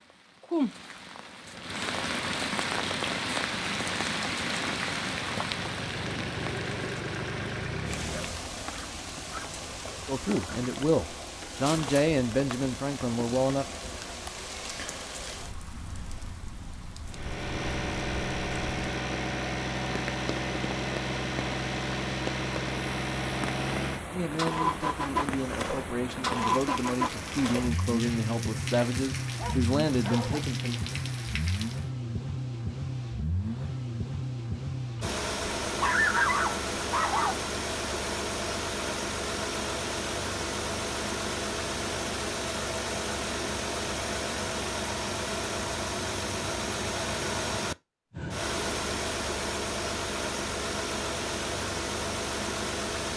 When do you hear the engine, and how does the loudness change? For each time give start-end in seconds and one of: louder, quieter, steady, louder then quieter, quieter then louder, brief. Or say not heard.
1.4-8.5 louder
17.1-53.1 steady.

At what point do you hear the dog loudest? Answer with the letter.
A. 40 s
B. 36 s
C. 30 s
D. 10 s
B.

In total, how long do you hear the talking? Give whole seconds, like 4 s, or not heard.
10 s.